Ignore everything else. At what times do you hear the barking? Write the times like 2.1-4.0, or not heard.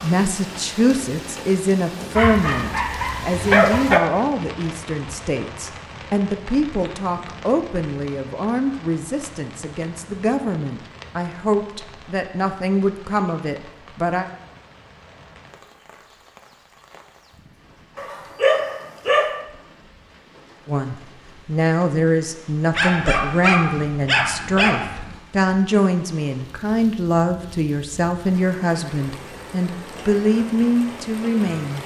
2.1-4.0, 17.9-19.4, 22.7-25.1.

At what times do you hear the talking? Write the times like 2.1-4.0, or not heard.
0.0-14.2, 20.6-31.8.